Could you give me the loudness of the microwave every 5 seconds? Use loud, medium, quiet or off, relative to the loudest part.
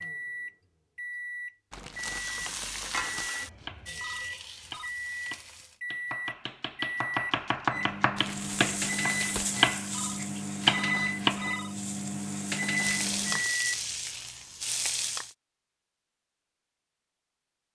medium, loud, loud, off.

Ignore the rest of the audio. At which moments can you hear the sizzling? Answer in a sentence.
You can hear the sizzling from 1.9 to 5.8 s and from 8.3 to 15.3 s.